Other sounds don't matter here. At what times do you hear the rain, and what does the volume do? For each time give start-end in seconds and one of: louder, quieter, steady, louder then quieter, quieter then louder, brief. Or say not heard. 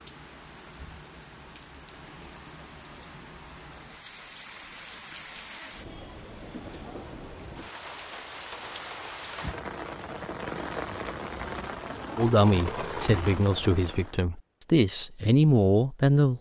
0.0-14.2 louder.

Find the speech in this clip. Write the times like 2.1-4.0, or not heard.
12.2-16.3.